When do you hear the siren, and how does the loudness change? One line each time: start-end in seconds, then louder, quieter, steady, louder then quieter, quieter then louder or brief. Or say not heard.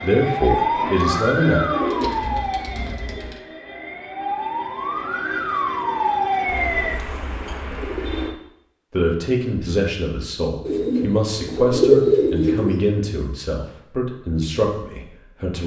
0.0-7.0 quieter then louder.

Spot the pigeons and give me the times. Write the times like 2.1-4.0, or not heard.
0.8-3.4, 6.5-8.3, 10.7-12.8.